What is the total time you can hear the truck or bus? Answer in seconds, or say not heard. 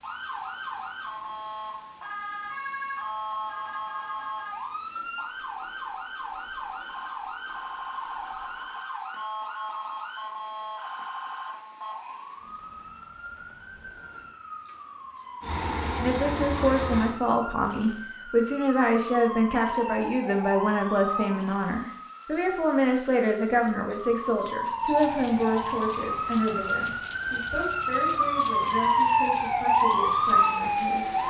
2 s.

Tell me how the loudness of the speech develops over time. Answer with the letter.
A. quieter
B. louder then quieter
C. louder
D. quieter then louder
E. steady
A.